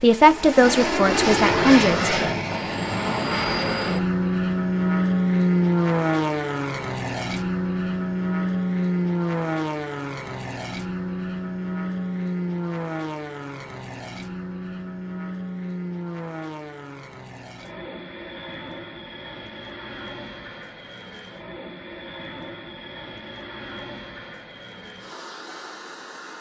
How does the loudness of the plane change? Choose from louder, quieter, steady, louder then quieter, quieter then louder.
quieter.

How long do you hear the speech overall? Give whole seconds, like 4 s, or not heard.
2 s.